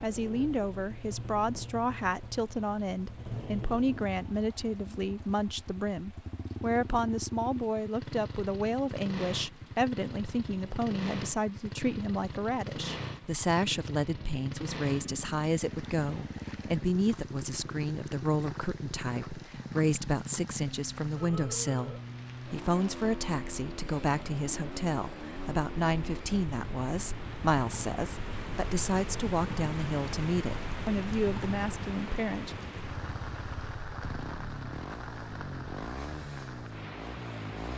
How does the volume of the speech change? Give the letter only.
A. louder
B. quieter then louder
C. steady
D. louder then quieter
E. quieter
C.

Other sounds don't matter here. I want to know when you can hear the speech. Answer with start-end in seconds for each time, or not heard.
0.0-32.5.